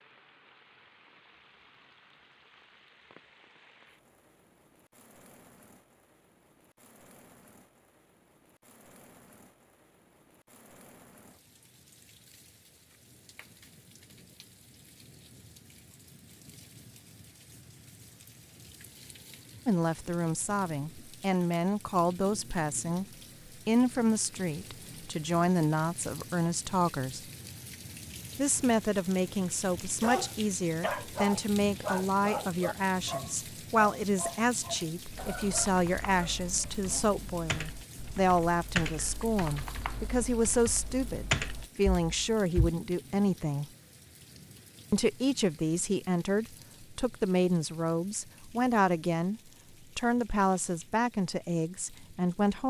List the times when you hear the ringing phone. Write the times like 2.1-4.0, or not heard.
not heard.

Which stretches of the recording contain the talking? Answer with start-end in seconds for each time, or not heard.
19.6-23.1, 23.6-27.2, 28.4-43.7, 44.9-52.6.